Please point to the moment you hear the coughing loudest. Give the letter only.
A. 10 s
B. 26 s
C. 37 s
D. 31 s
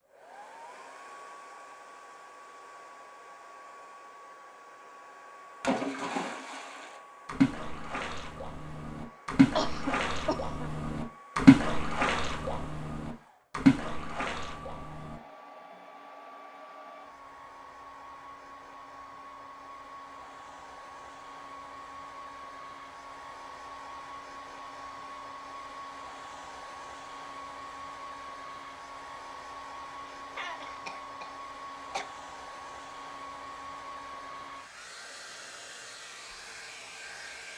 A.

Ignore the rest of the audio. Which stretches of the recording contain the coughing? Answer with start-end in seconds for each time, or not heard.
9.6-10.7, 30.1-32.0.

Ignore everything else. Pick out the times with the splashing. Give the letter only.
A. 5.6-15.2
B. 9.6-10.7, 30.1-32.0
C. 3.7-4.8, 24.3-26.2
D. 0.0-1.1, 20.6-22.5
A.